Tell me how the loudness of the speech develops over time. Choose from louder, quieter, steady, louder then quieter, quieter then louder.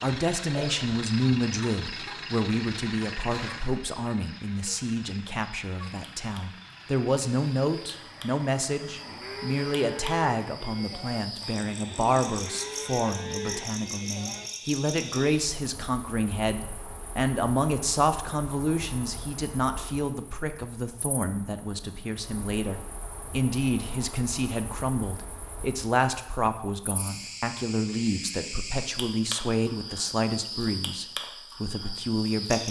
steady.